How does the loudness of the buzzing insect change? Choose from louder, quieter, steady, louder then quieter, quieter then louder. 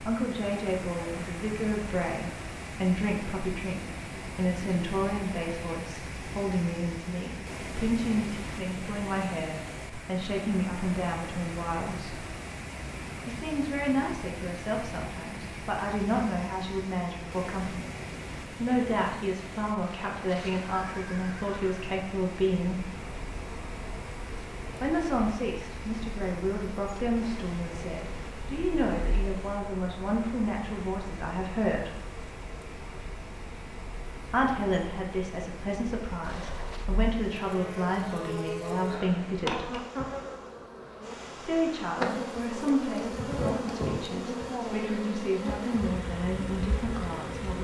louder.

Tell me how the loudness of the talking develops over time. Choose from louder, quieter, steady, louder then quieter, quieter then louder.
steady.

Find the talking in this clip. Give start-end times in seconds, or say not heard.
0.0-12.2, 13.2-22.8, 24.8-31.9, 34.2-39.8, 41.4-47.5.